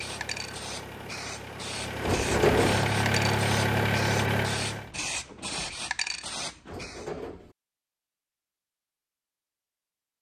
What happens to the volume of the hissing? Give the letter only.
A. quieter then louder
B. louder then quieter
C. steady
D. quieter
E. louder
E.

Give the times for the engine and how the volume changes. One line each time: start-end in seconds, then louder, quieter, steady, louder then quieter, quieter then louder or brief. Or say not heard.
0.0-4.9 louder.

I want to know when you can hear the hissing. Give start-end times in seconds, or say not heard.
0.0-7.1.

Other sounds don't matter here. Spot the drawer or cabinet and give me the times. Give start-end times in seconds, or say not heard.
2.0-2.9, 6.7-7.5.